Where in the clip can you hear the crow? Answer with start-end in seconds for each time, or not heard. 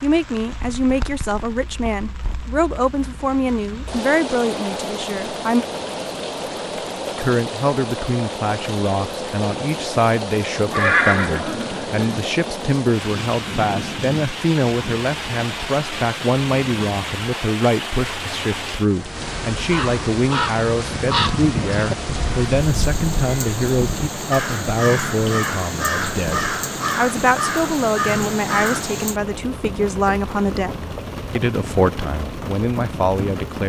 19.6-28.9.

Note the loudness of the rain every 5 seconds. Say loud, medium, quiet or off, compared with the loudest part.
medium, loud, loud, loud, loud, loud, loud.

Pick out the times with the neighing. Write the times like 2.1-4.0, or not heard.
10.7-12.2.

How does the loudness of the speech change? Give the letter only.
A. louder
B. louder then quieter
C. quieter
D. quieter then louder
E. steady
E.